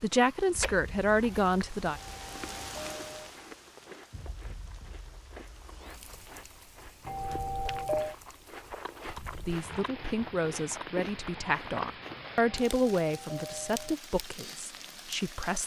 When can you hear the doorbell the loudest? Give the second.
8 s.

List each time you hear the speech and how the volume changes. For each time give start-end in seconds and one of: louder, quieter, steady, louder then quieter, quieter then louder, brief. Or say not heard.
0.0-2.0 brief
9.4-15.6 louder then quieter.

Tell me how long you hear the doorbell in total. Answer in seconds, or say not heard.
4 s.